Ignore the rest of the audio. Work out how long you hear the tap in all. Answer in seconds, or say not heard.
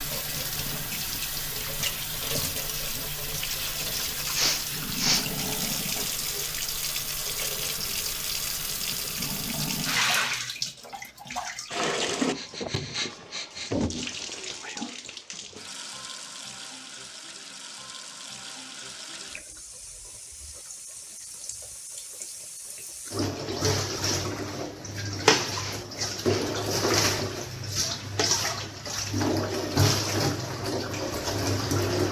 32 s.